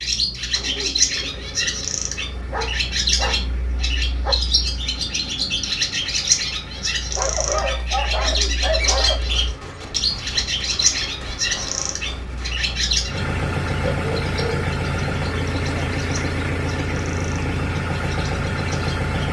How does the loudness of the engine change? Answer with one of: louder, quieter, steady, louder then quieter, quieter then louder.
louder.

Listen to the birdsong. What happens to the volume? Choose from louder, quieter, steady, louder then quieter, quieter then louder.
quieter.